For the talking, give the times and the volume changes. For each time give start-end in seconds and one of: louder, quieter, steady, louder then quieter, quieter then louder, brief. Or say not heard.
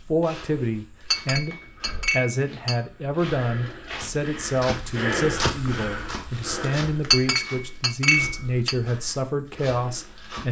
0.1-10.4 steady.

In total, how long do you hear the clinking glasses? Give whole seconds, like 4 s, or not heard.
3 s.